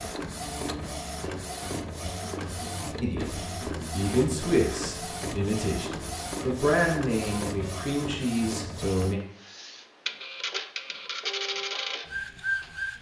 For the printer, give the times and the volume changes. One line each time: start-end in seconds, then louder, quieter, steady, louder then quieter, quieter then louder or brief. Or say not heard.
0.0-12.9 steady.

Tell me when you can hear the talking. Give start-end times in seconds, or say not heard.
3.0-9.2.